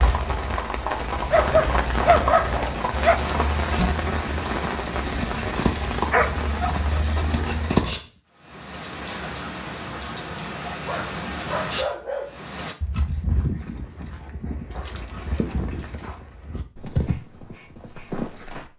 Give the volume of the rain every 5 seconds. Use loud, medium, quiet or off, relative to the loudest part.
loud, loud, loud, off.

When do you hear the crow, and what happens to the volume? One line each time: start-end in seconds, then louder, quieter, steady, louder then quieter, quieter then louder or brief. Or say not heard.
not heard.